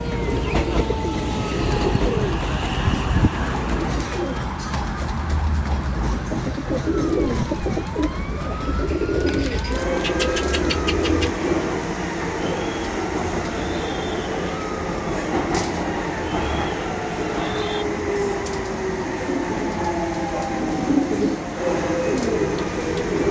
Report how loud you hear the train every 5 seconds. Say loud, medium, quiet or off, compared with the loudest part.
loud, medium, loud, loud, loud.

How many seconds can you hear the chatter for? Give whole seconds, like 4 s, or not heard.
not heard.